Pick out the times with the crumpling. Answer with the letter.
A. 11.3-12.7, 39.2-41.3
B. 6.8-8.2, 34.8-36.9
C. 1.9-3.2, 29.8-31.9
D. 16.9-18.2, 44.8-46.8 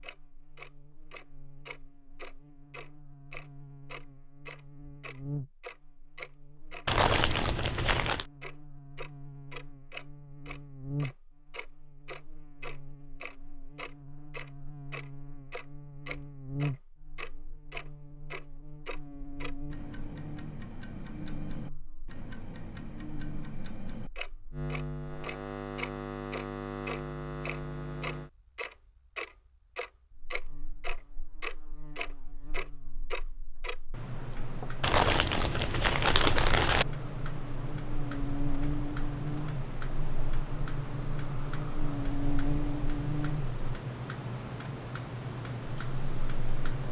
B.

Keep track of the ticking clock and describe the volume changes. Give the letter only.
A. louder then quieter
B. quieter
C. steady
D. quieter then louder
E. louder
E.